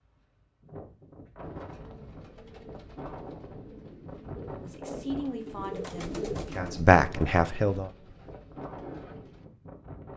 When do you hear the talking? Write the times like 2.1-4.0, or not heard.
4.5-7.9.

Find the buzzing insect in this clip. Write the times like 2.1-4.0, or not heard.
not heard.